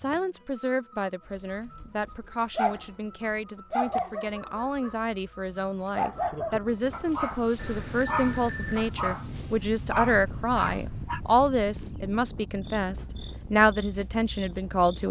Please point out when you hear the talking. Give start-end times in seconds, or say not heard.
0.0-15.0.